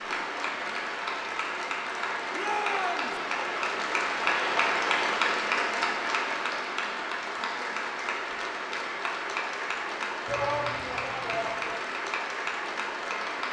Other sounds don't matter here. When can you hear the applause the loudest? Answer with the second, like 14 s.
5 s.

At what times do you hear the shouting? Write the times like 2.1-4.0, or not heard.
2.4-3.1, 10.2-11.8.